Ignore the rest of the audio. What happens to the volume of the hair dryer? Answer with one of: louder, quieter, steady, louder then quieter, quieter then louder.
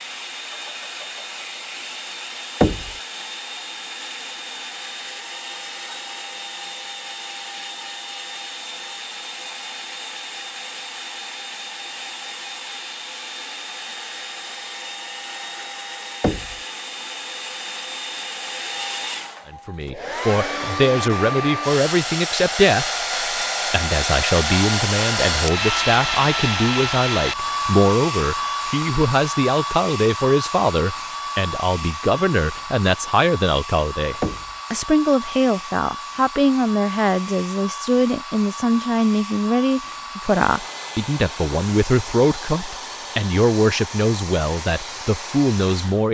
louder then quieter.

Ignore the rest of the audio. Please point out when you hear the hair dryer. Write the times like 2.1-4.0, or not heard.
0.0-46.1.